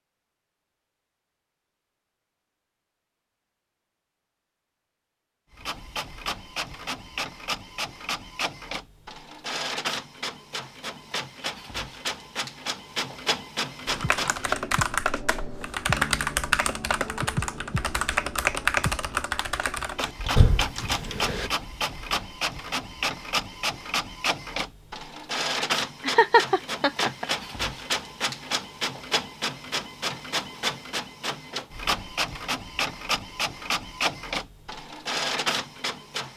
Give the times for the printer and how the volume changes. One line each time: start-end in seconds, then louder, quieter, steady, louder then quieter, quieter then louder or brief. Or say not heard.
5.5-14.6 steady
19.9-36.3 steady.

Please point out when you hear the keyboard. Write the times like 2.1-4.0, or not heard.
13.8-21.5.